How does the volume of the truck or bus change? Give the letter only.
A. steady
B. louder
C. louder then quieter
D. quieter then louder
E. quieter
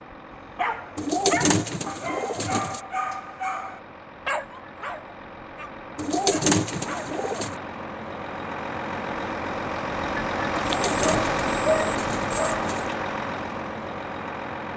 B.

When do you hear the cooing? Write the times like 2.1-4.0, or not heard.
0.9-2.8, 6.0-7.5, 10.6-12.9.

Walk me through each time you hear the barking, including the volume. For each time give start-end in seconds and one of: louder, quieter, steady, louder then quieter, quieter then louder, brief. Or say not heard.
0.5-7.2 quieter
10.7-12.8 brief.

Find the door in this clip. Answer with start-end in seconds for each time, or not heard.
not heard.